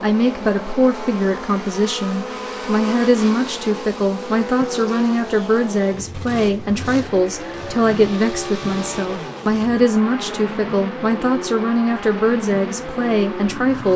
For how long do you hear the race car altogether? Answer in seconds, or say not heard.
14 s.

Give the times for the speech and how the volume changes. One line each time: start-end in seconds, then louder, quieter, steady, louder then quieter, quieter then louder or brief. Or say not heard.
0.0-13.9 steady.